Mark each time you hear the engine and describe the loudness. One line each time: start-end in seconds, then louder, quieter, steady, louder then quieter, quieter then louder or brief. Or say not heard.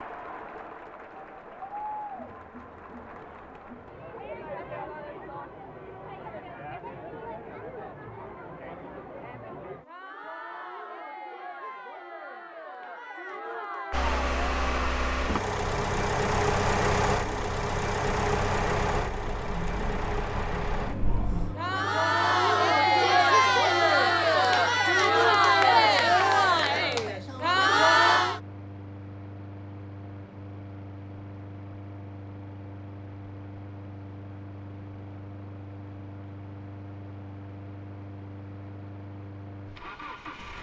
13.9-40.5 quieter.